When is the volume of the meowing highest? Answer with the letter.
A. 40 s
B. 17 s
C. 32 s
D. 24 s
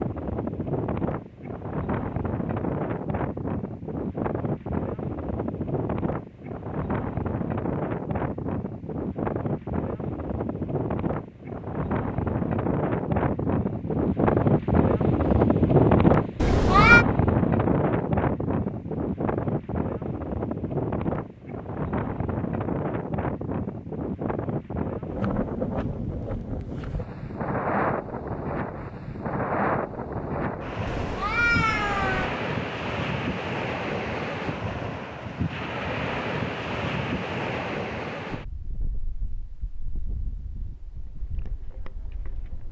B.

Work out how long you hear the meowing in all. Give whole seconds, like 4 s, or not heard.
2 s.